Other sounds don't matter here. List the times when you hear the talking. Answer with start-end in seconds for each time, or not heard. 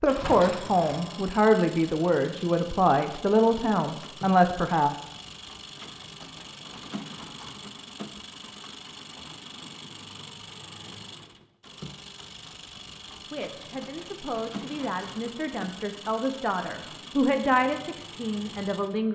0.0-4.9, 13.3-19.0.